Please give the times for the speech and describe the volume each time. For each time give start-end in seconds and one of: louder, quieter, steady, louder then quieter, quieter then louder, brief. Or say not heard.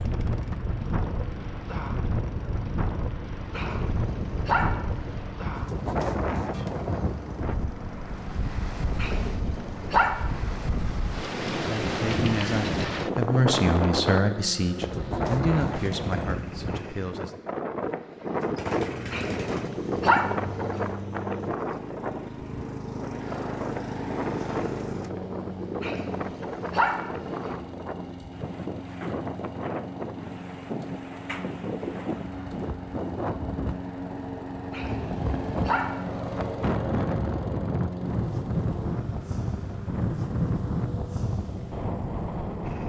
11.6-17.4 louder then quieter.